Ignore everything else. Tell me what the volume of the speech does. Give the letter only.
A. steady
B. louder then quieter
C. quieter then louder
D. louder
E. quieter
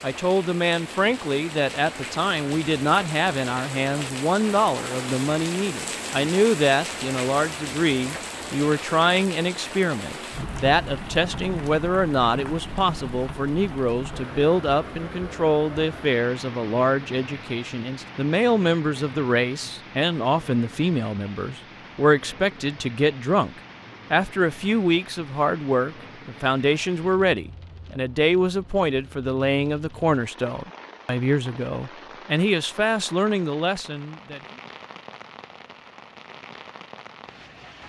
A.